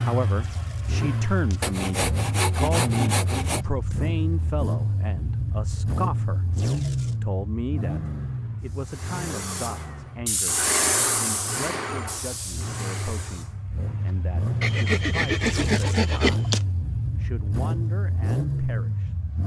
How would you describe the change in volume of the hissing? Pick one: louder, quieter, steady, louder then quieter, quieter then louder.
louder then quieter.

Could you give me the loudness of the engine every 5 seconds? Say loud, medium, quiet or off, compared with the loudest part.
loud, loud, medium, loud.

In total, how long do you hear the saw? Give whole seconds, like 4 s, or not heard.
4 s.